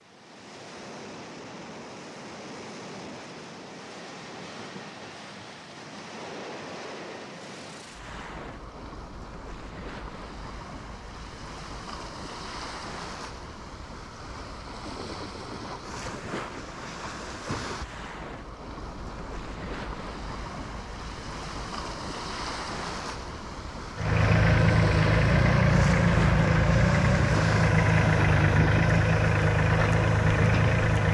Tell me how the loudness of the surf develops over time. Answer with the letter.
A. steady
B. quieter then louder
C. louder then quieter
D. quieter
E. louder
E.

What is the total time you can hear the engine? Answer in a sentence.
The engine can be heard for 7 seconds in total.